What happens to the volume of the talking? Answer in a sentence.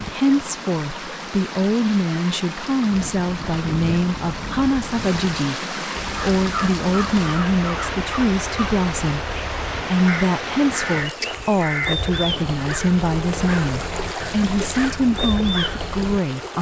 The volume of the talking stays about the same.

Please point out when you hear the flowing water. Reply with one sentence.
You can hear the flowing water from 0.0 to 16.5 s.